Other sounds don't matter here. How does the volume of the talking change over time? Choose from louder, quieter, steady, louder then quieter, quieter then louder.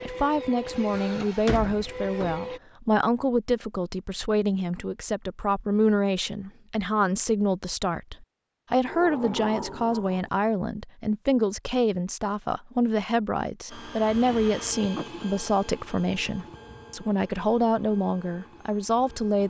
steady.